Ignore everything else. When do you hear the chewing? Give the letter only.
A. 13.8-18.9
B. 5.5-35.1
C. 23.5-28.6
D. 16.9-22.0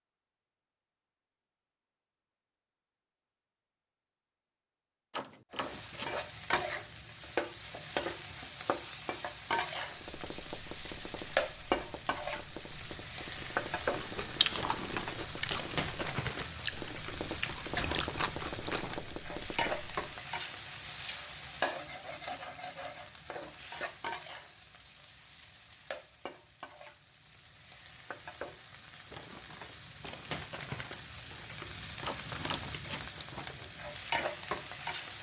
A.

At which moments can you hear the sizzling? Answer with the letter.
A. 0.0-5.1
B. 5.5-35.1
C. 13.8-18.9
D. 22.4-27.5
B.